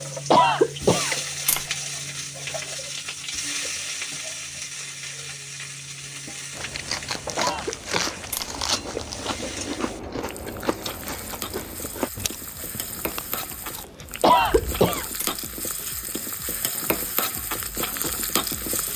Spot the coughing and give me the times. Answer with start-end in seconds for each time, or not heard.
0.3-1.1, 7.3-8.2, 14.2-15.1.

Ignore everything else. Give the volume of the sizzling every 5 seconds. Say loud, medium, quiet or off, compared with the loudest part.
loud, medium, medium, loud.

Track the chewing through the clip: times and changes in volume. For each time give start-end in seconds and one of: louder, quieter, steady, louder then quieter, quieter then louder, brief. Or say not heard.
6.5-15.2 quieter.